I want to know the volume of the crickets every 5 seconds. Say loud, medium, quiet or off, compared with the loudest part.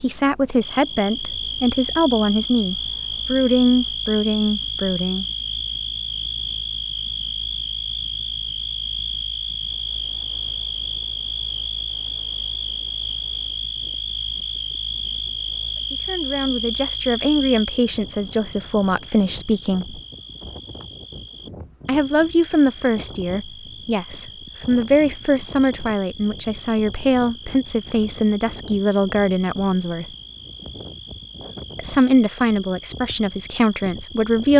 loud, loud, loud, loud, quiet, quiet, quiet.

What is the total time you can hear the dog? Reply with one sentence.
The dog can't be heard in this clip.